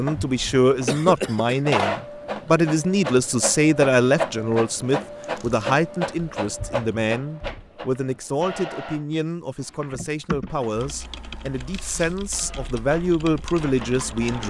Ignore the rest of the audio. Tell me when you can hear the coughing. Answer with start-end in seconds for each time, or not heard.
0.8-1.7.